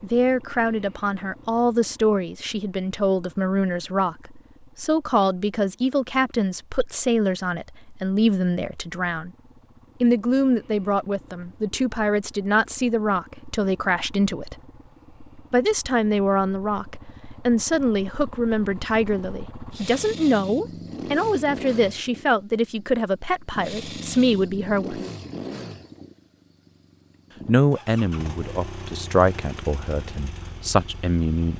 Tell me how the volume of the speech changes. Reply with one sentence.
The volume of the speech stays about the same.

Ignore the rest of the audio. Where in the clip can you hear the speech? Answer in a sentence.
You can hear the speech from 0.0 to 9.3 s, from 10.0 to 14.6 s, from 15.5 to 25.1 s and from 27.4 to 31.5 s.